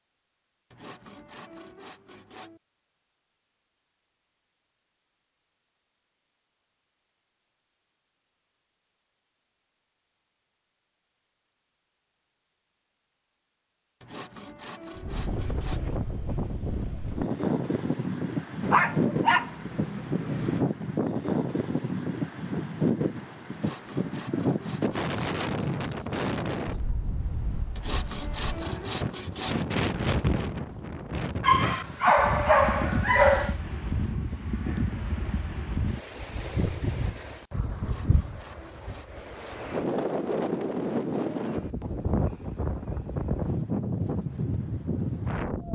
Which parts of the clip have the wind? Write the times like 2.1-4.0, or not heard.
14.9-45.6.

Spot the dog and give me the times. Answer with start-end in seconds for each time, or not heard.
18.6-20.6, 31.4-33.5.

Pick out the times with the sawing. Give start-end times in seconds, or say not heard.
0.7-2.6, 14.0-15.9, 23.5-25.4, 27.8-29.6, 37.8-39.6.